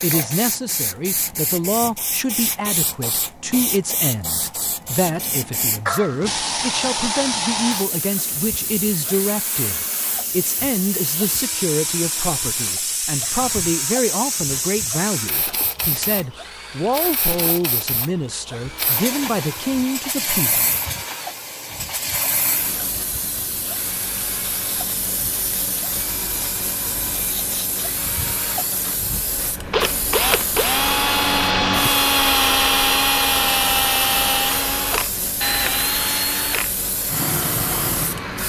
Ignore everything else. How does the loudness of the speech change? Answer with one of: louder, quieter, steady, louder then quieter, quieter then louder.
steady.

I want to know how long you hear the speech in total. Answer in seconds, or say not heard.
21 s.